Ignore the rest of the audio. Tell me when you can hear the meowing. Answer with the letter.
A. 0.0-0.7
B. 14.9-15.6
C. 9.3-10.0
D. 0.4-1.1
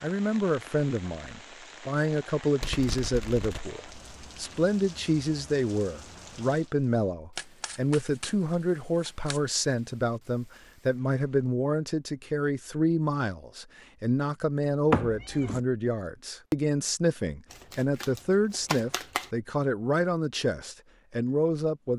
B.